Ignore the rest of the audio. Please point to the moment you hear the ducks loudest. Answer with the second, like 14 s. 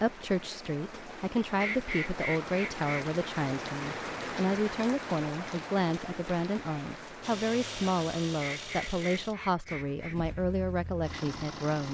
2 s.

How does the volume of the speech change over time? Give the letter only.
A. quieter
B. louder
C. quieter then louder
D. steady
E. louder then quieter
D.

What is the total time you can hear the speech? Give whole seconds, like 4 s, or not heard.
12 s.